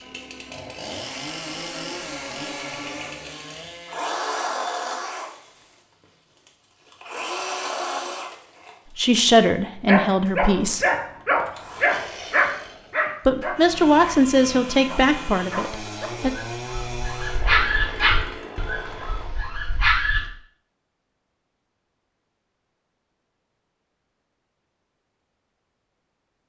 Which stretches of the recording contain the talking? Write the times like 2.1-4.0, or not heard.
8.9-10.8, 13.2-16.3.